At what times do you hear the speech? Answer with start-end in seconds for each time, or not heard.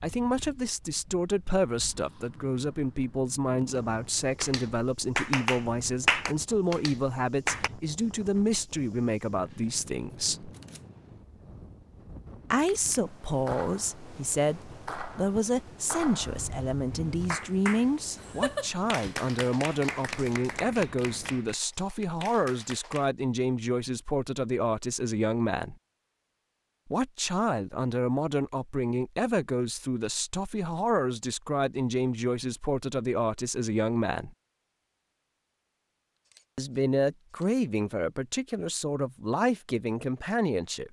0.0-10.5, 12.5-25.8, 26.9-34.3, 36.5-40.8.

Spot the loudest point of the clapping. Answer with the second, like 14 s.
6 s.